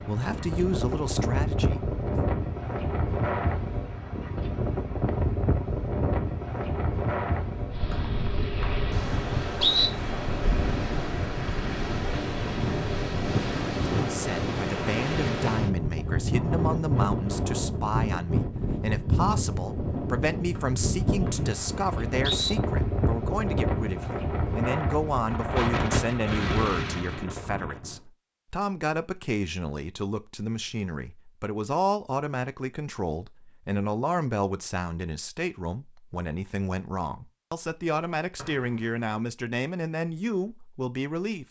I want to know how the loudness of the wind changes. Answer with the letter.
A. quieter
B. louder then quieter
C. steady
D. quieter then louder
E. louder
C.